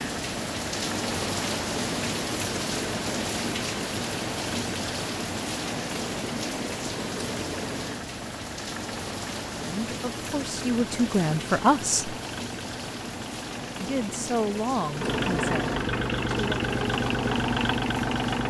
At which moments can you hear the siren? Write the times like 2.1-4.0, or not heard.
not heard.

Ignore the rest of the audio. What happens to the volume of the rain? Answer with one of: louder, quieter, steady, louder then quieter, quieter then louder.
quieter.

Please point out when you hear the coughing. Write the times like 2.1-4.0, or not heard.
not heard.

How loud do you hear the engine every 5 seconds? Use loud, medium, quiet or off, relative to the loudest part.
quiet, quiet, quiet, loud.